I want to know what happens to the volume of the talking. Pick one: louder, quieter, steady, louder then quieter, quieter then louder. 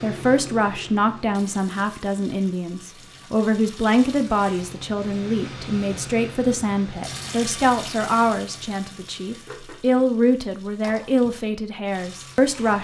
steady.